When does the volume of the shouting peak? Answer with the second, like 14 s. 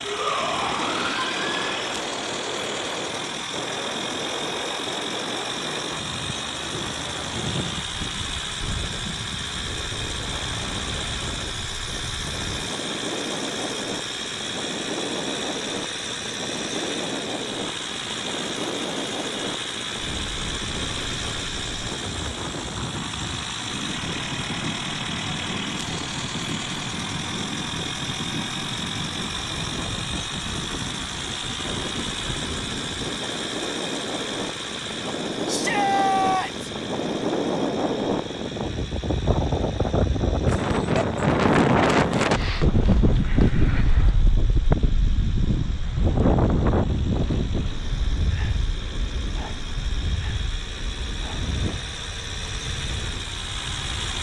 36 s.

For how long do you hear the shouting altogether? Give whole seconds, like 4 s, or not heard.
3 s.